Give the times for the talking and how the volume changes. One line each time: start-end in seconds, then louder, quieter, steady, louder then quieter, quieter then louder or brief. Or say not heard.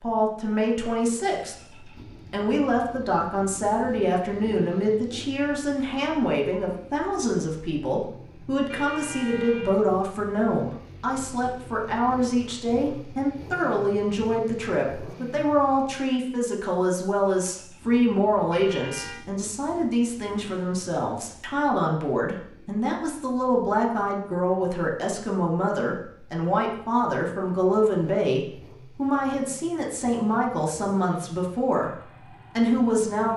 0.0-33.3 steady.